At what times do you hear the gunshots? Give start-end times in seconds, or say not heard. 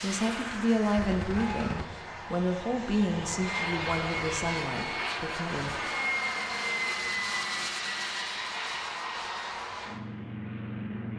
0.9-1.9.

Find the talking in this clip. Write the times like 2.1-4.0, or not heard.
0.0-5.8.